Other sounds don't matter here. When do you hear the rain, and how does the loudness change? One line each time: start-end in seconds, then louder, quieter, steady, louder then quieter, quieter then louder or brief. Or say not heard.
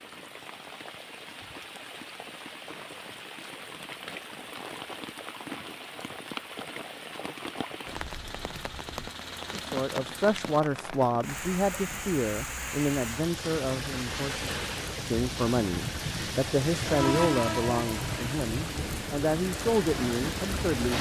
0.0-20.9 louder.